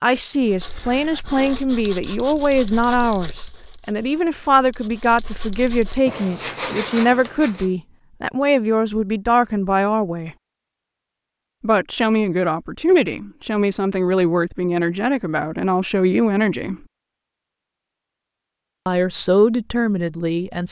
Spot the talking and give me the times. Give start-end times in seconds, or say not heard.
0.0-10.3, 11.6-16.8, 18.9-20.6.